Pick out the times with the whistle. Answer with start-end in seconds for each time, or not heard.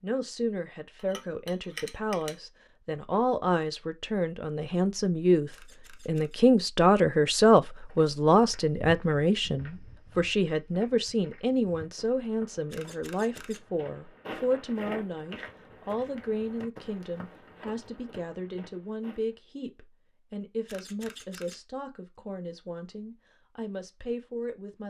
not heard.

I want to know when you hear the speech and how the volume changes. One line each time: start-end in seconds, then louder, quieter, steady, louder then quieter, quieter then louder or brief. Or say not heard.
0.0-24.8 louder then quieter.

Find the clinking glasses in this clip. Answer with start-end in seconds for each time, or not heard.
0.9-2.4.